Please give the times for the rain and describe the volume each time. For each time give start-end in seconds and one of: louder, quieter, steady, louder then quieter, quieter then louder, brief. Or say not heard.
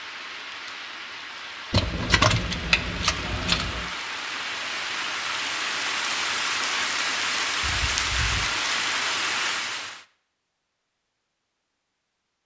0.0-10.1 louder.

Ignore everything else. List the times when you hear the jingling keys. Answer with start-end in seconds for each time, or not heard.
1.7-3.9, 7.6-8.4.